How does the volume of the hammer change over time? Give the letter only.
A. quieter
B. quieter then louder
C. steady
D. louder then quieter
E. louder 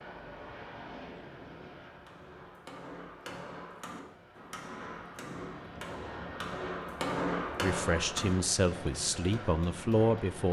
D.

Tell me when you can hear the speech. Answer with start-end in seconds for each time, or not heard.
7.6-10.4.